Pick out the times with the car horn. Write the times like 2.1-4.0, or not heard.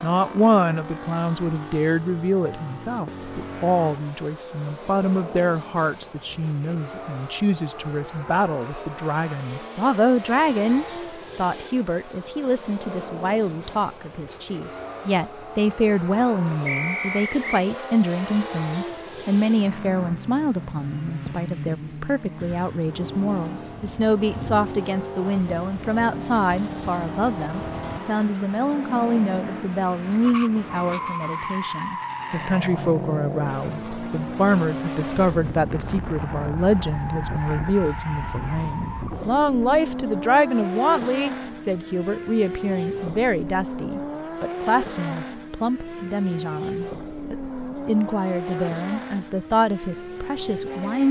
not heard.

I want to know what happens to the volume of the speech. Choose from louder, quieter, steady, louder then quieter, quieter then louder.
steady.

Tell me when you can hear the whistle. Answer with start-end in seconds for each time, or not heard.
16.6-17.6.